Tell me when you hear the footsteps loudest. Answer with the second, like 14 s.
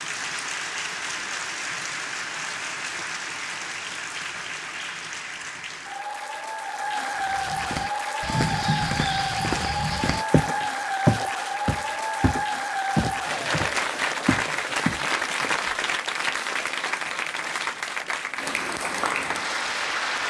11 s.